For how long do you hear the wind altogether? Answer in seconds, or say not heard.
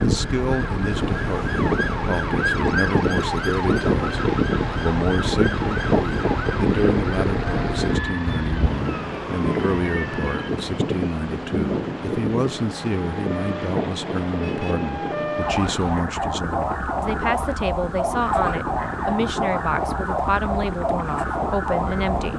22 s.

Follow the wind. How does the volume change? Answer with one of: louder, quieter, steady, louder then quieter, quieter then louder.
quieter.